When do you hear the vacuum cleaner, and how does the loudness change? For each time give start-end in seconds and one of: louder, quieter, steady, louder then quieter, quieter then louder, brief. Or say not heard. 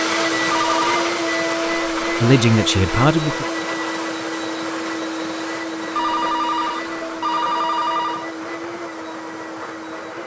0.0-10.2 quieter.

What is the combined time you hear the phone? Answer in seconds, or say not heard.
3 s.